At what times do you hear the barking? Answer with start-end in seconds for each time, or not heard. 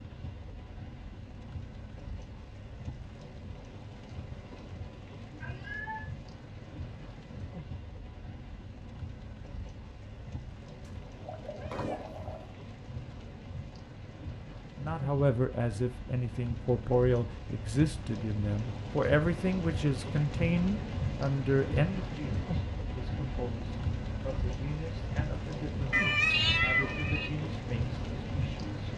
not heard.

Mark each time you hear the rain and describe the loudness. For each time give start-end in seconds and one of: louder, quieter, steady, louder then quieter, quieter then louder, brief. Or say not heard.
0.0-28.9 louder.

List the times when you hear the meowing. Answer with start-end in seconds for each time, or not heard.
5.3-6.1, 10.8-12.6, 25.9-27.3.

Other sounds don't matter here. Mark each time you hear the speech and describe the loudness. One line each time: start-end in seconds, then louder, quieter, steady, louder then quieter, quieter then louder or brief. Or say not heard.
14.8-28.8 quieter.